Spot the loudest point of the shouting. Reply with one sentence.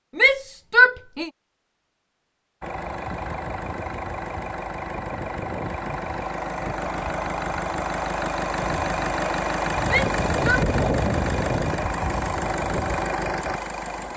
The volume of the shouting peaks at 1 second.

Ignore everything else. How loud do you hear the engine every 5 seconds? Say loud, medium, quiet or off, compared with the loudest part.
medium, loud, loud.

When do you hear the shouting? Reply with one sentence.
The shouting can be heard from 0.1 to 1.3 s and from 9.8 to 10.7 s.